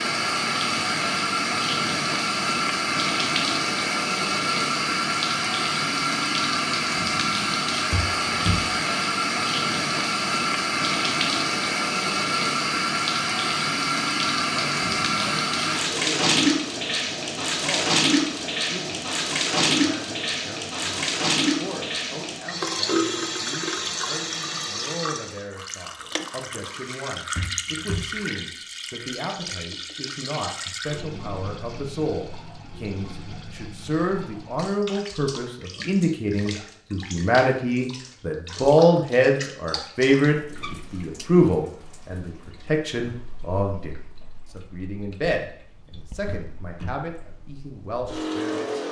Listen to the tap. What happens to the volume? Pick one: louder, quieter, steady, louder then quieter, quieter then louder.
quieter.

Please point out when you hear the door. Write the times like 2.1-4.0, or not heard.
7.9-8.7, 27.4-28.1, 46.2-46.9.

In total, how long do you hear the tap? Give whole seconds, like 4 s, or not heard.
49 s.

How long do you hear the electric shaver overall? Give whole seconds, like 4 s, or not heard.
not heard.